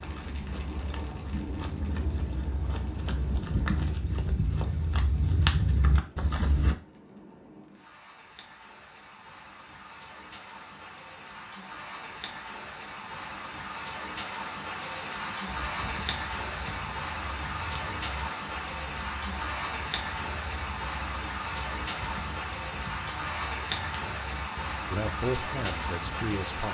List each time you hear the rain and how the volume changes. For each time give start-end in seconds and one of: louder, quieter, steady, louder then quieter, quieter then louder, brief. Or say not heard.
0.0-26.6 quieter then louder.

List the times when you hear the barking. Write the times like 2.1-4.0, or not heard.
14.8-16.8.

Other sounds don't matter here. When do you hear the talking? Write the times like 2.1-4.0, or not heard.
24.9-26.6.